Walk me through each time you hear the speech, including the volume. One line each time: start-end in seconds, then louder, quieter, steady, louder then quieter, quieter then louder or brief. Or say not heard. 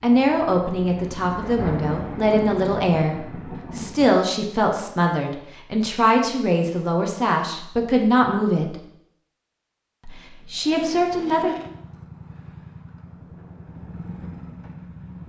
0.0-8.8 steady
10.1-11.6 brief.